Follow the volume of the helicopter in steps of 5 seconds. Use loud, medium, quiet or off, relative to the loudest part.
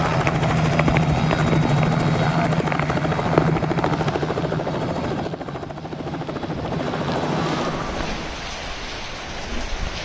loud, medium.